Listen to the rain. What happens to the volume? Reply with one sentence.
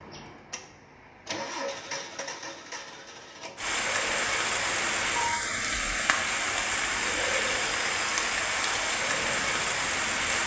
The loudness of the rain stays about the same.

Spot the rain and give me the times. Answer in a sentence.
You can hear the rain from 3.5 to 10.4 s.